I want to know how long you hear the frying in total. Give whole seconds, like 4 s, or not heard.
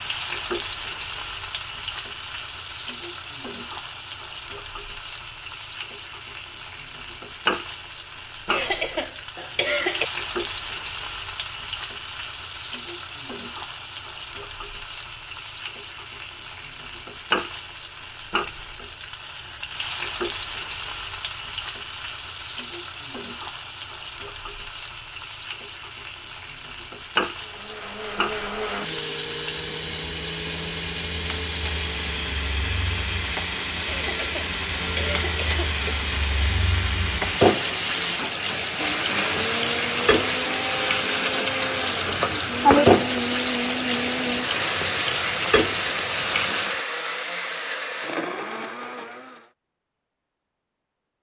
47 s.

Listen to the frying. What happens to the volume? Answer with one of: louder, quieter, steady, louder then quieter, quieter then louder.
louder.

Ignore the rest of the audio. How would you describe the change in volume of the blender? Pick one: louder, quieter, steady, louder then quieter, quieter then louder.
steady.